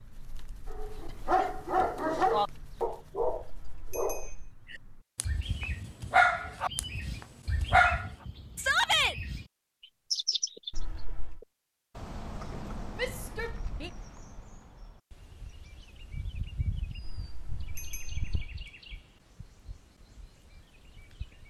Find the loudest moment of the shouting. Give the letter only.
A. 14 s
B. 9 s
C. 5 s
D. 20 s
B.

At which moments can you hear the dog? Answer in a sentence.
The dog can be heard from 0.7 to 8.1 s.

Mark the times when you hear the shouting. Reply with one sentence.
The shouting can be heard from 8.6 to 9.2 s and from 12.9 to 13.9 s.